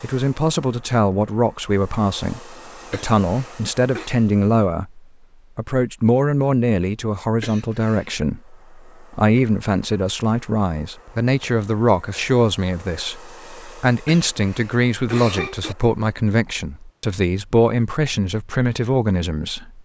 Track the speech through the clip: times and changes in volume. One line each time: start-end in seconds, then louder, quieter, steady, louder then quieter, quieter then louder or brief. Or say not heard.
0.0-19.8 steady.